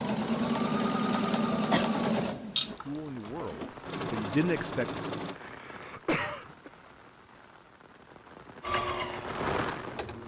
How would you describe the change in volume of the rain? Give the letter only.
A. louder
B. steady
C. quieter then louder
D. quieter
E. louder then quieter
C.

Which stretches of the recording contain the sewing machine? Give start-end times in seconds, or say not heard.
0.0-5.3, 8.6-10.2.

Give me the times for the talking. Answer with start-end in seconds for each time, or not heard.
2.9-5.1.